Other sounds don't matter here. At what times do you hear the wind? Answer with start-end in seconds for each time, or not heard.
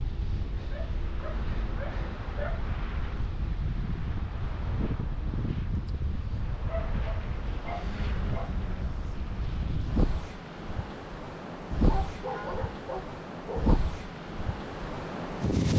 0.0-15.7.